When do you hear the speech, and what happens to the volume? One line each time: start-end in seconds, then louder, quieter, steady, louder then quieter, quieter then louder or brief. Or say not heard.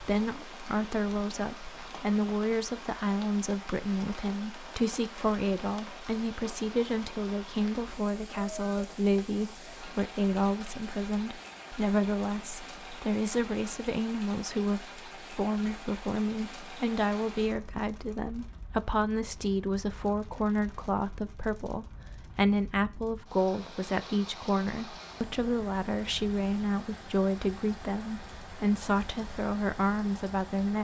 0.0-30.7 steady.